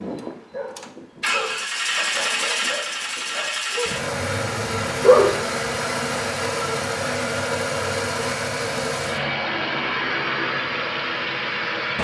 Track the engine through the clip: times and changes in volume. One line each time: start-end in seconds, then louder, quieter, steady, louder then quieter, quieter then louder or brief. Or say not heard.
0.0-12.0 steady.